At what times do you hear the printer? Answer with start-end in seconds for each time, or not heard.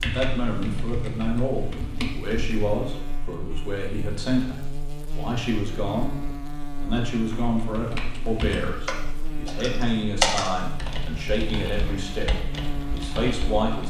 not heard.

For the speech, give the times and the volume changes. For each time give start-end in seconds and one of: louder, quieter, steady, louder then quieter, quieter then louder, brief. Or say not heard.
0.0-6.2 steady
6.8-13.8 steady.